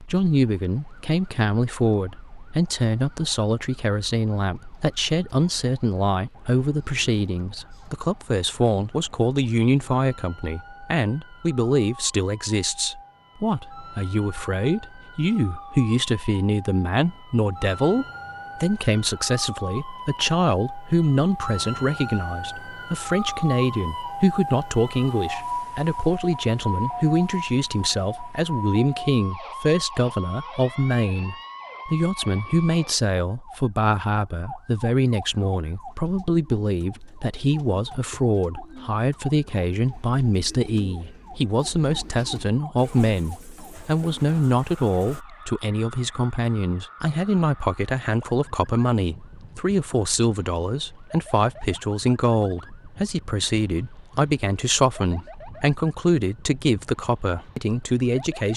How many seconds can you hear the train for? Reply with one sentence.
You can't hear the train here.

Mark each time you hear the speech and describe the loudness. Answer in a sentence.
You can hear the speech from 0.0 to 58.5 s, at a steady volume.